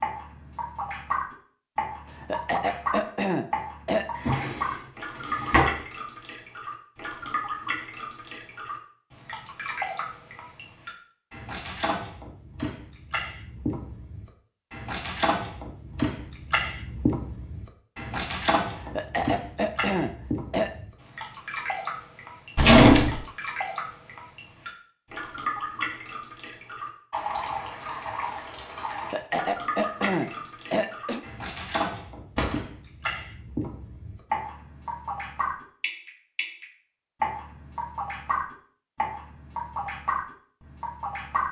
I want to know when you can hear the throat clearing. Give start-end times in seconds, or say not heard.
2.1-4.0, 18.8-20.7, 28.9-31.2.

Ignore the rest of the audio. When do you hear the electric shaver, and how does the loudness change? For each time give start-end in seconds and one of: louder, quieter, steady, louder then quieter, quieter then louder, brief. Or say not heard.
not heard.